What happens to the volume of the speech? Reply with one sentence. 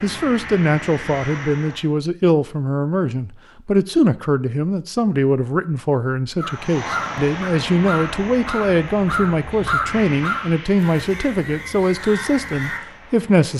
The loudness of the speech stays about the same.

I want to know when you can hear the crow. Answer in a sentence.
The crow can be heard from 6.3 to 12.8 s.